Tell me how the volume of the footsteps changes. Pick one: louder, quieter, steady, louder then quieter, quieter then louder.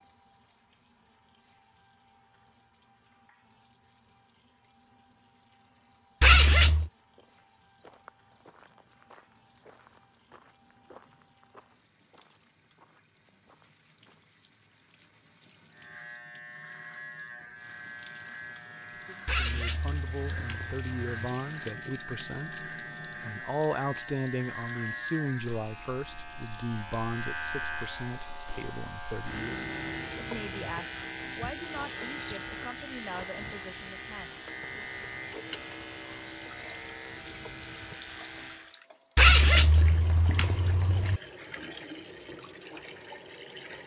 quieter.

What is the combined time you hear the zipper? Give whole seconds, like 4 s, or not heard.
5 s.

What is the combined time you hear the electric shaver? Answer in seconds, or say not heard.
23 s.